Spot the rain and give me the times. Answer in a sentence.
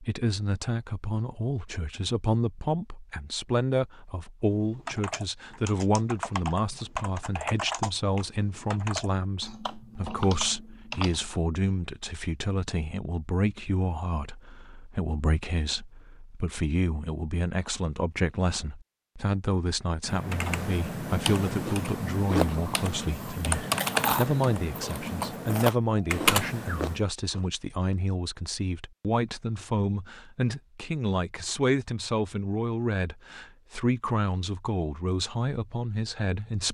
You can't hear the rain here.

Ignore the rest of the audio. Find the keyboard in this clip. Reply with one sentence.
The keyboard can be heard from 4.5 to 11.4 s and from 20.1 to 27.0 s.